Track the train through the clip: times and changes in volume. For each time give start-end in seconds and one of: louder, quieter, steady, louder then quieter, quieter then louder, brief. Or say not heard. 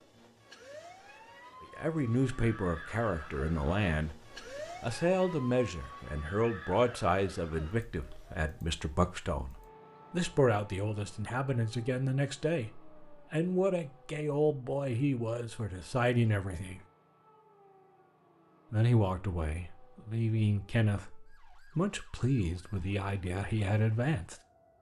not heard.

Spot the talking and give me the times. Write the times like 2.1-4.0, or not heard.
1.8-4.2, 4.8-16.8, 18.7-24.4.